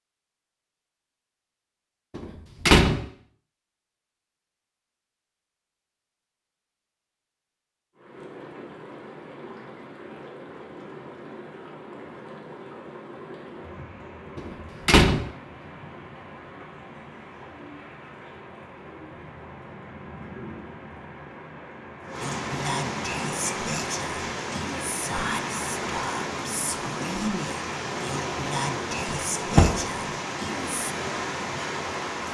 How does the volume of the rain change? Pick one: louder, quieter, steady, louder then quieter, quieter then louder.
louder.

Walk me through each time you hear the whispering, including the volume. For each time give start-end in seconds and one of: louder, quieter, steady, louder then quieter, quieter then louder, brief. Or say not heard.
22.2-30.9 steady.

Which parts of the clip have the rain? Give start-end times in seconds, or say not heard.
8.0-32.2.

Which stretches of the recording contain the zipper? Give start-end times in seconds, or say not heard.
not heard.